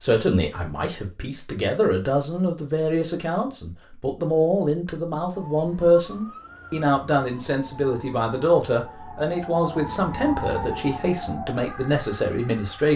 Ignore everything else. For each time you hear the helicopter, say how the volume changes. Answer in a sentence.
You can't hear the helicopter here.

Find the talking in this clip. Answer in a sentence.
The talking can be heard from 0.0 to 12.9 s.